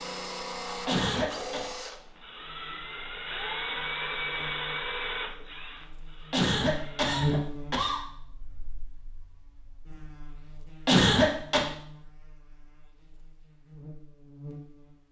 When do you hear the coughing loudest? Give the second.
11 s.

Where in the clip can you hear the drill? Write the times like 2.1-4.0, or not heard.
0.0-7.5.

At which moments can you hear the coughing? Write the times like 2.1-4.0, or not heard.
0.8-1.6, 6.3-8.0, 10.8-11.7.